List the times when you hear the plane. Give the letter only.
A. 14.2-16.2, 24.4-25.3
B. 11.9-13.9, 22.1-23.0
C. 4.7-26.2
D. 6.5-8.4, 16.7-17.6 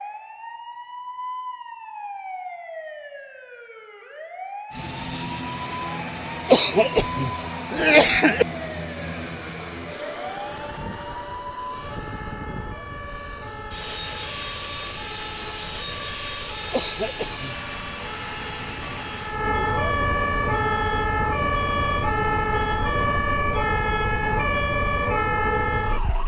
C.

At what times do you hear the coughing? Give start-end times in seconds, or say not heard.
6.5-8.4, 16.7-17.6.